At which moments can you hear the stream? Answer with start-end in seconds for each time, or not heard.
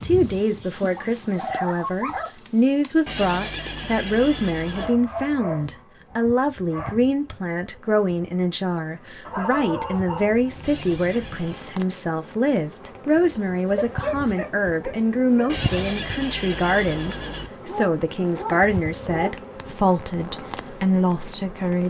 not heard.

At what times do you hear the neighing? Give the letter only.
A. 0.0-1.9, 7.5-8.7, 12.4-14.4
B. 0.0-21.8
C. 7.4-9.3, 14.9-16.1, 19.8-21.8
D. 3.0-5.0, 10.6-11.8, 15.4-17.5
D.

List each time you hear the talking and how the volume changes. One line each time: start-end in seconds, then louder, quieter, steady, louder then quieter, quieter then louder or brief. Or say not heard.
0.0-21.8 steady.